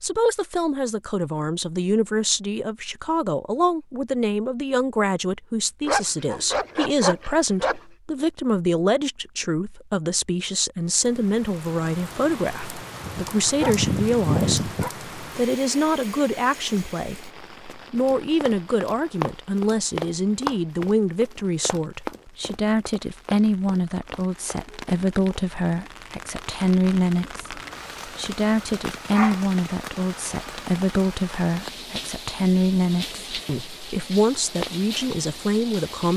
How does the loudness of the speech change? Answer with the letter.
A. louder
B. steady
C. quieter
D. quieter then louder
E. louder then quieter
B.